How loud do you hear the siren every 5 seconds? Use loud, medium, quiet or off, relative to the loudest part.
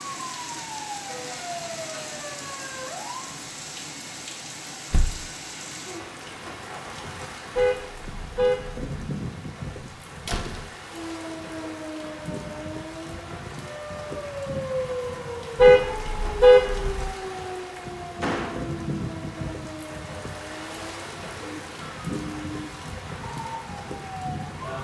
loud, off, loud, loud, loud.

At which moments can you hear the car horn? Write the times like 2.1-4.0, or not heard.
7.5-8.9, 15.6-17.1.